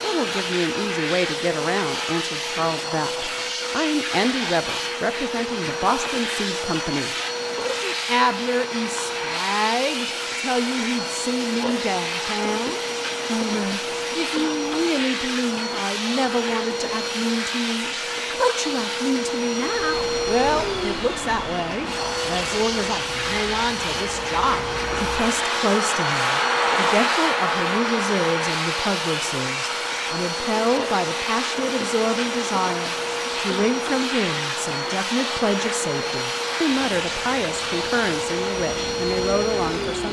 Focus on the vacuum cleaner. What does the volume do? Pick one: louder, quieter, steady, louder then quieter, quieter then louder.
steady.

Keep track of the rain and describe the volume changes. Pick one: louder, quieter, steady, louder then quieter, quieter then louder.
louder then quieter.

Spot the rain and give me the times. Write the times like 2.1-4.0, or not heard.
19.7-40.0.